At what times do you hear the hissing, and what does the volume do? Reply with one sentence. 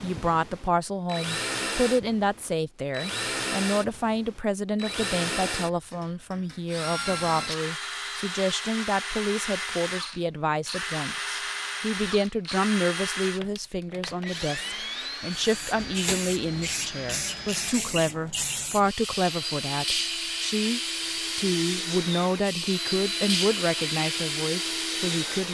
The hissing can be heard from 15.3 to 25.4 s, at a steady volume.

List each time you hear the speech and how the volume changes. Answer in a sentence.
The speech can be heard from 0.0 to 25.4 s, at a steady volume.